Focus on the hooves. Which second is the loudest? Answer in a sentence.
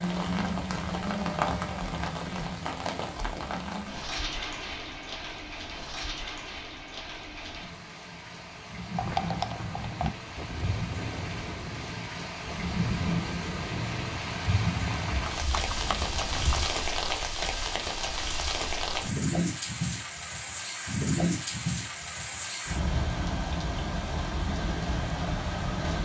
The volume of the hooves peaks at 9 seconds.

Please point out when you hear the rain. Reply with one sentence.
You can hear the rain from 0.0 to 26.0 s.